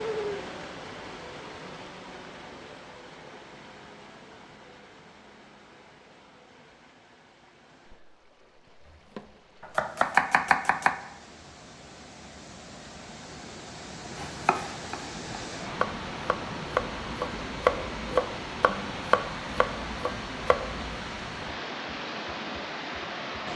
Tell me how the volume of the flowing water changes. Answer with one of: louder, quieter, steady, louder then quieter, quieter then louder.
quieter then louder.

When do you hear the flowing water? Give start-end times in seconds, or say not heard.
0.0-23.5.